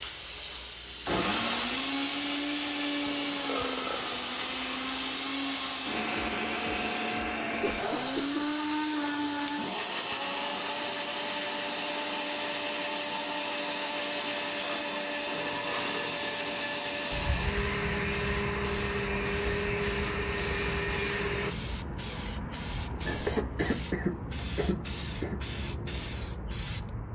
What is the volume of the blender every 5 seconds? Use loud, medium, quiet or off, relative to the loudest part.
loud, loud, loud, loud, loud, off.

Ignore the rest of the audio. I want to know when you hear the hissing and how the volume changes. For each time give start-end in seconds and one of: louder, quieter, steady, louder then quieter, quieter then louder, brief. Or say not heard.
0.0-27.1 steady.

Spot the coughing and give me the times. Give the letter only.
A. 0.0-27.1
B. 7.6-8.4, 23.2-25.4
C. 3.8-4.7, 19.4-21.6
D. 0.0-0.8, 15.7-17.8
B.